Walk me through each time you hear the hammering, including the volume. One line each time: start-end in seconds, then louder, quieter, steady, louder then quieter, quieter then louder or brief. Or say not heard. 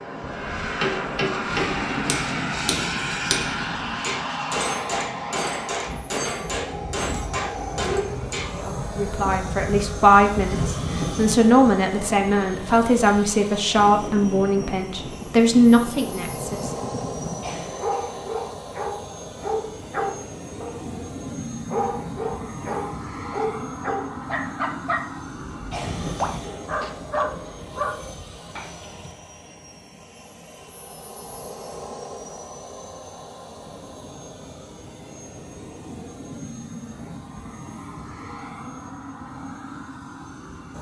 0.8-8.5 steady.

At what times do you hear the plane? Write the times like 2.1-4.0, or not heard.
0.0-40.7.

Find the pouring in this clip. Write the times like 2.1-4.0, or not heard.
not heard.